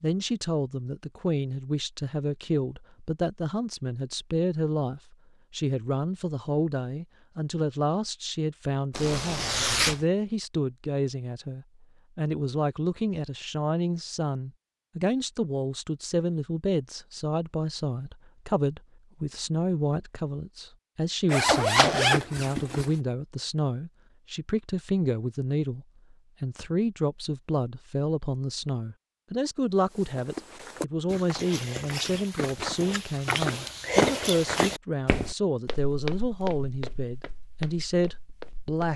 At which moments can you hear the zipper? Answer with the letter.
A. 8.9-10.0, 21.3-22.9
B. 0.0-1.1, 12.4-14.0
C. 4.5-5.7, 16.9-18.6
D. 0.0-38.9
A.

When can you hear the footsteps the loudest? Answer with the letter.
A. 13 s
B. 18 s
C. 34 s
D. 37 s
C.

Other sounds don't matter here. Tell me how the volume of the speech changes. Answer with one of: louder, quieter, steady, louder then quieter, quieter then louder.
steady.